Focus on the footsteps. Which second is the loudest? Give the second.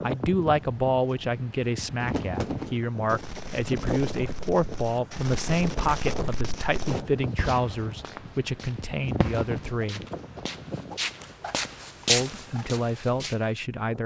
12 s.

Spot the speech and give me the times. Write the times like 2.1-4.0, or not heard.
0.0-10.1, 12.1-14.0.